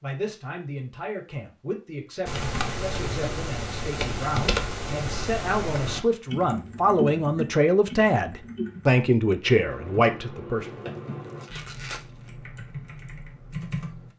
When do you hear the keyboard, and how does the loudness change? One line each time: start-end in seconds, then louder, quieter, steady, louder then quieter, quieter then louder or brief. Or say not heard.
2.2-14.1 quieter.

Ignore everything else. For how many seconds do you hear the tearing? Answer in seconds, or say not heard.
2 s.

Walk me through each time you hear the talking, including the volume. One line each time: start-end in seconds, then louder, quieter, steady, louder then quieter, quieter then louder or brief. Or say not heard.
0.0-10.9 louder.